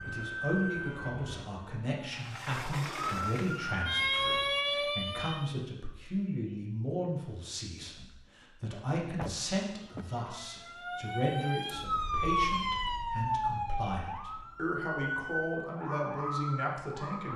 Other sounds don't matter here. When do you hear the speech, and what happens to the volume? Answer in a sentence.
The speech can be heard from 0.1 to 17.3 s, at a steady volume.